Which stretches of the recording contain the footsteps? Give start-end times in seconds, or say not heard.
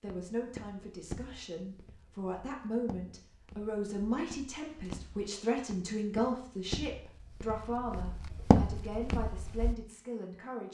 0.1-9.8.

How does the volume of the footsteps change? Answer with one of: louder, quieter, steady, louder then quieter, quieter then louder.
quieter then louder.